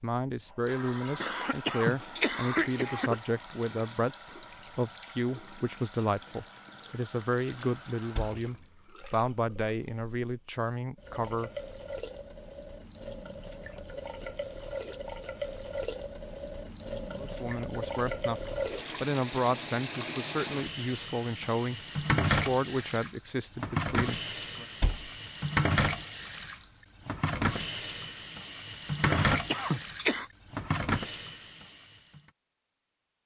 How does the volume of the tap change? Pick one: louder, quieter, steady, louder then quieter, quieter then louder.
louder.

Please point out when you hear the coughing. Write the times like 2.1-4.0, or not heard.
1.2-3.2, 29.0-30.3.